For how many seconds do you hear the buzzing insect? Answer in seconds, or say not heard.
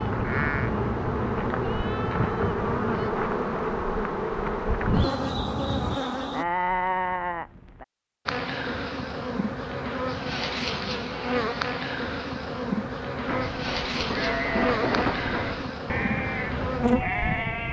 16 s.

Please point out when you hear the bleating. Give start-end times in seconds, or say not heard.
0.0-3.1, 4.8-7.8, 13.2-17.6.